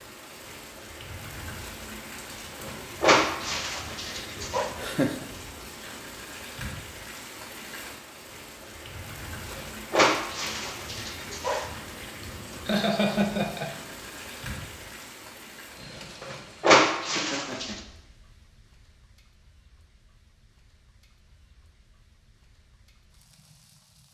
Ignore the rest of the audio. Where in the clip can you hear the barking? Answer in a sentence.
You can hear the barking from 2.6 to 4.7 s, from 9.5 to 11.7 s and from 16.2 to 17.8 s.